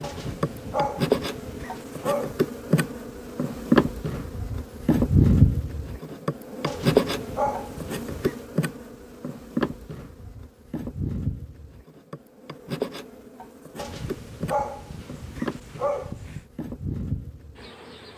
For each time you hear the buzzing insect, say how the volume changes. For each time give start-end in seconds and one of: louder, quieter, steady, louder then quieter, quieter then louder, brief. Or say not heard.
0.0-18.1 quieter.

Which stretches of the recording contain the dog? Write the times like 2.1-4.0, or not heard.
0.0-2.4, 6.7-8.3, 13.8-16.4.